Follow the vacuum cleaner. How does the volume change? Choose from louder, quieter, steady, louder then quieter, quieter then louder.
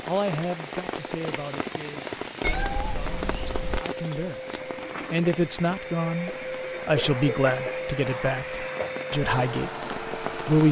louder.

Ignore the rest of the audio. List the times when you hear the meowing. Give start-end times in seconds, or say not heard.
2.4-3.9, 6.2-7.8.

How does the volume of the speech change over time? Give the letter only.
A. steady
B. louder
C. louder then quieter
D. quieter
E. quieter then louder
B.